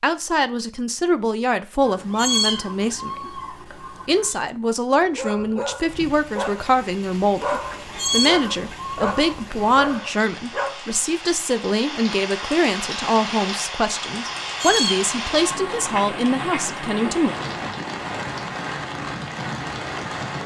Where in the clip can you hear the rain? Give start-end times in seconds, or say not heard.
5.8-20.4.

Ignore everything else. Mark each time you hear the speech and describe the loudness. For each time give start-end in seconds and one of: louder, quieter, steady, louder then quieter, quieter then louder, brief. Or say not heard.
0.0-17.4 steady.